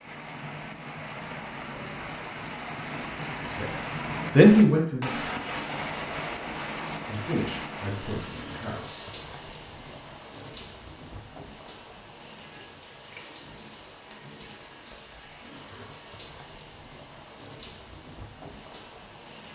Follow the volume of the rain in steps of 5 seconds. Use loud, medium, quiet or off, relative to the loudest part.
loud, loud, medium, medium.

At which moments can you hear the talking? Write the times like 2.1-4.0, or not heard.
3.4-5.2, 7.0-9.1.